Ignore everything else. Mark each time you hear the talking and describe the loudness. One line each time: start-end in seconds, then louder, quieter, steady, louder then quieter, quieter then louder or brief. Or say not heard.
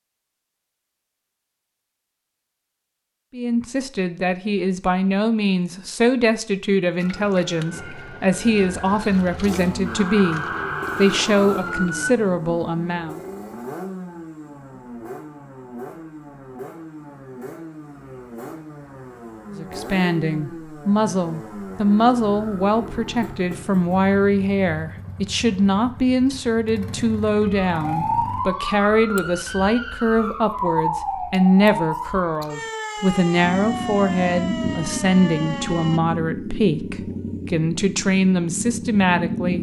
3.3-13.2 steady
19.6-39.5 steady.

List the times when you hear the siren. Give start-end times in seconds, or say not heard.
7.0-12.1, 27.4-36.0.